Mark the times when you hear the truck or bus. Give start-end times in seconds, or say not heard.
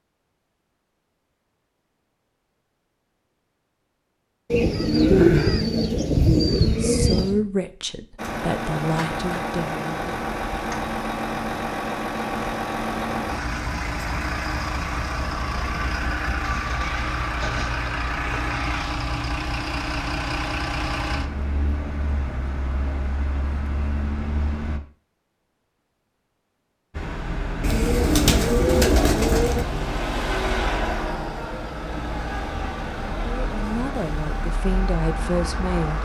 8.2-24.8, 26.9-36.0.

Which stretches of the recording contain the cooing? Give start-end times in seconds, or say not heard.
4.5-7.5, 16.4-18.9, 27.6-29.6.